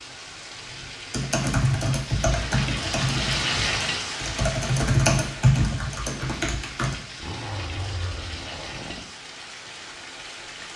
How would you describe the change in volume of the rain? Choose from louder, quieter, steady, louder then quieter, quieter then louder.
louder then quieter.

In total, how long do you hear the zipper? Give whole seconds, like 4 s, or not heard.
2 s.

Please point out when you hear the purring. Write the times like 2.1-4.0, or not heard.
not heard.